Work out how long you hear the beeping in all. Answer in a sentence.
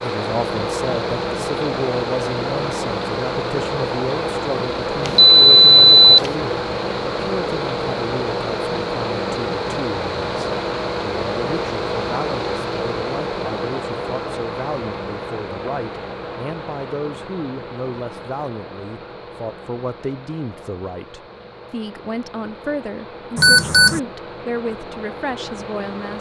You can hear the beeping for 2 seconds altogether.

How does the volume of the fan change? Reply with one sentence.
The loudness of the fan goes down.